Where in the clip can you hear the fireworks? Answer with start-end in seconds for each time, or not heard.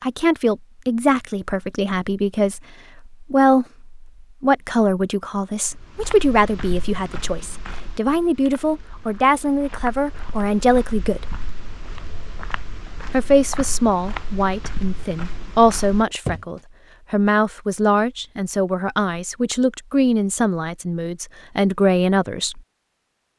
not heard.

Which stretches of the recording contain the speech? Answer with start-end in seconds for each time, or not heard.
0.0-11.2, 13.1-22.6.